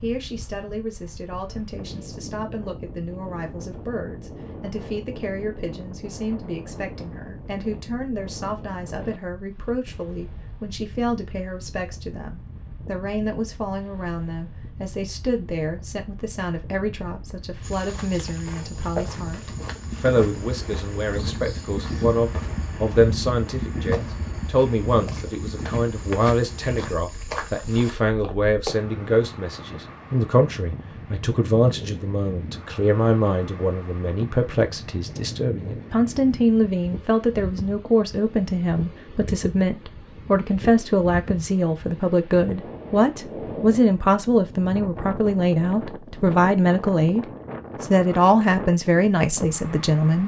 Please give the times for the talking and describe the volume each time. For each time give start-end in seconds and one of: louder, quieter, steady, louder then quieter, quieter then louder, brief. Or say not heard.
0.0-50.2 louder.